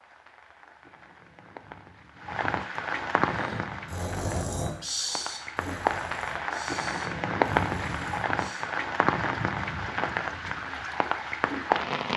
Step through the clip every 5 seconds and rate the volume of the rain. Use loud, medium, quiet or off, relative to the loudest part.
medium, loud, loud.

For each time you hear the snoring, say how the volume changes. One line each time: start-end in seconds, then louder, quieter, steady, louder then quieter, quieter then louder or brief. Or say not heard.
3.2-8.7 quieter.